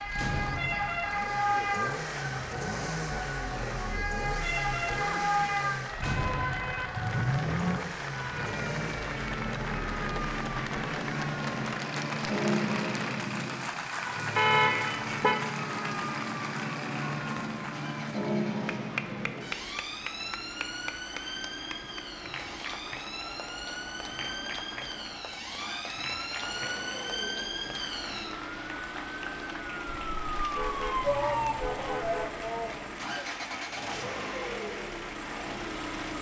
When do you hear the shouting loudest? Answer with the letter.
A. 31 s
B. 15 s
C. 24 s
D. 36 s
A.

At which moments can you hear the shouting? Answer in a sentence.
The shouting can be heard from 31.0 to 33.2 s.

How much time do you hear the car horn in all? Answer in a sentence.
The car horn can be heard for 5 seconds in total.